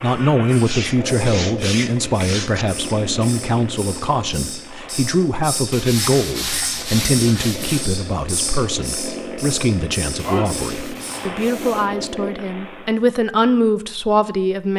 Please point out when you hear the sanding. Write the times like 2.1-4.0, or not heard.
0.7-2.6, 5.7-7.9, 10.2-12.1.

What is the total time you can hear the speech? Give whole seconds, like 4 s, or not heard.
15 s.